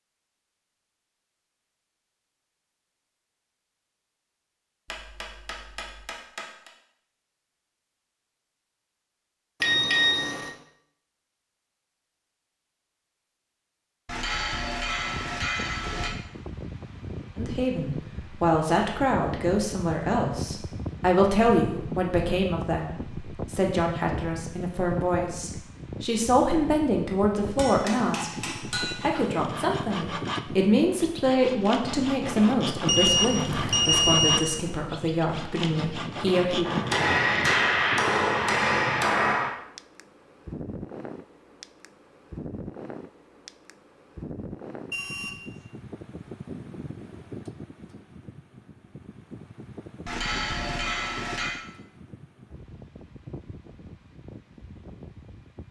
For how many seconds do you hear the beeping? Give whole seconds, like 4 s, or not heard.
3 s.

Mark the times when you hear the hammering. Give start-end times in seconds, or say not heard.
4.8-6.7, 14.1-16.1, 27.6-29.3, 36.6-39.5, 50.0-51.6.